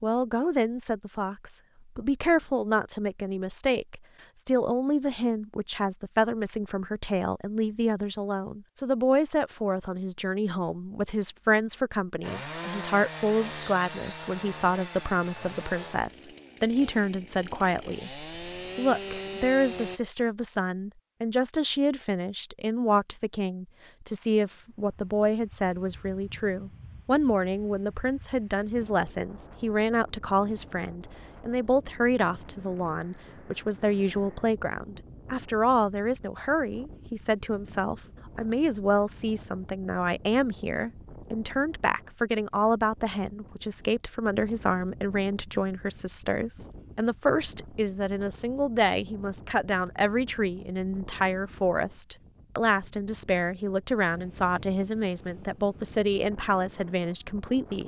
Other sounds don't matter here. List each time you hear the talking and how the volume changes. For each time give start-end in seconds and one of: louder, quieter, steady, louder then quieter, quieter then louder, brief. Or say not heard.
0.0-57.8 steady.